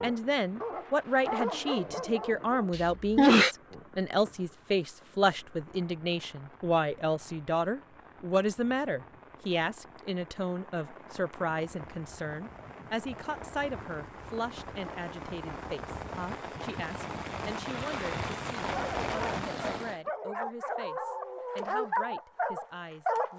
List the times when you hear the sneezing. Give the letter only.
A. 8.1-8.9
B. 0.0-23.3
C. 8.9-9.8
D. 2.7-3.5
D.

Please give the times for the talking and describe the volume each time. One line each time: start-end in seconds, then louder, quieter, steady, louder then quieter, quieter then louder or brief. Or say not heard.
0.0-23.3 quieter.